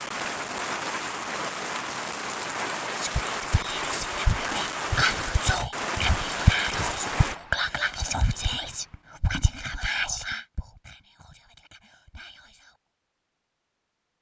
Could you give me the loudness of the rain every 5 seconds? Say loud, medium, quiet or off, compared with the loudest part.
loud, loud, off.